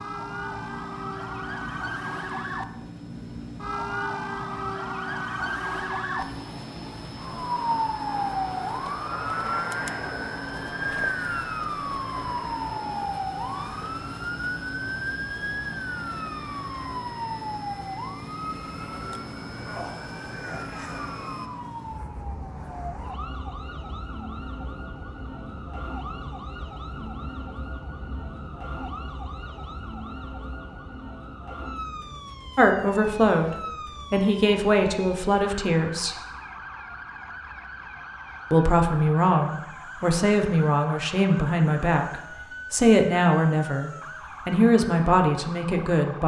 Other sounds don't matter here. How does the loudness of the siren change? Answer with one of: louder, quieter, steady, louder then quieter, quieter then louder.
quieter.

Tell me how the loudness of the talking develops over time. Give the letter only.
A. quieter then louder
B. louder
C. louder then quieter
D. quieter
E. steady
E.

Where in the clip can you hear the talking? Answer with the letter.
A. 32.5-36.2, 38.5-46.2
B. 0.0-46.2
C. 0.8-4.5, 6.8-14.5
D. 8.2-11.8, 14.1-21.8
A.